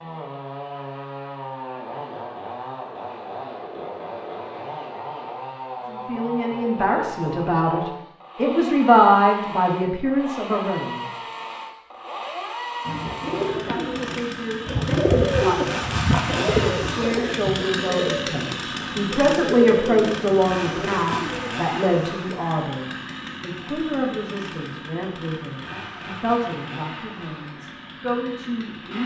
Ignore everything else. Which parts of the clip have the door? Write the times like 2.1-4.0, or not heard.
not heard.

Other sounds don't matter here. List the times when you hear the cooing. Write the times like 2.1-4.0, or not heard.
12.8-21.5.